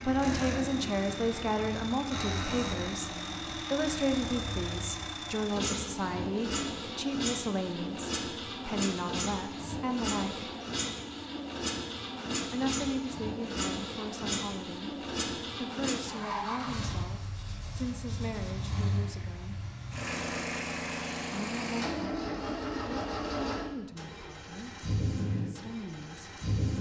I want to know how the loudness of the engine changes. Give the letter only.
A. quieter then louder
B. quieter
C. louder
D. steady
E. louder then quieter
D.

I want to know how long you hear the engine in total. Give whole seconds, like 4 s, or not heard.
27 s.